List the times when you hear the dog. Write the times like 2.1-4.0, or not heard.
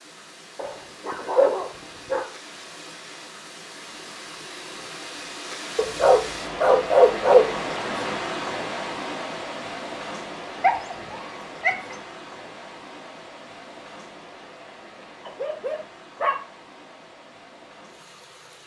0.6-2.2, 5.8-7.5, 10.6-11.9, 15.2-16.4.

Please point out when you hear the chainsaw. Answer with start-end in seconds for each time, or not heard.
not heard.